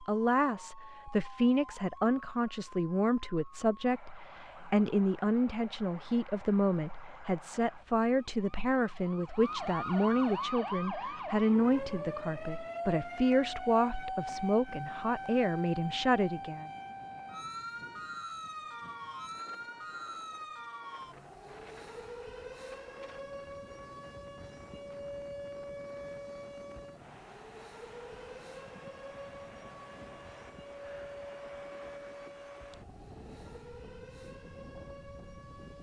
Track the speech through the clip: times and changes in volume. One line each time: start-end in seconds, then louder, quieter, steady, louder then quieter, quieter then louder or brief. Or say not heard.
0.0-16.7 steady.